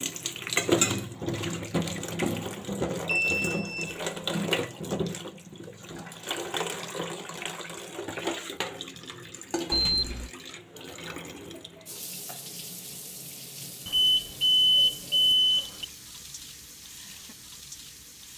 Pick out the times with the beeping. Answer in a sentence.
The beeping can be heard from 3.0 to 4.1 s, from 9.7 to 10.3 s and from 13.8 to 15.8 s.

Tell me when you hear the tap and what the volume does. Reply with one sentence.
You can hear the tap from 0.0 to 18.3 s, getting quieter.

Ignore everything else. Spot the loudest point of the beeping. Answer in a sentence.
The loudest moment of the beeping is at 15 seconds.